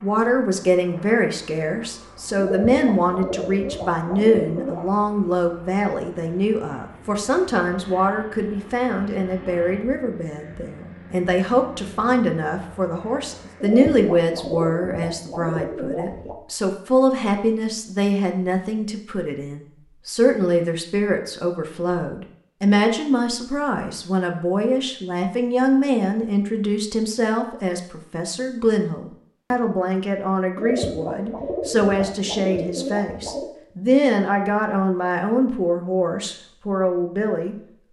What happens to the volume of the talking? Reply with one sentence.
The volume of the talking stays about the same.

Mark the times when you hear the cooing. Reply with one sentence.
The cooing can be heard from 2.4 to 4.9 s, from 13.6 to 16.4 s and from 30.6 to 33.5 s.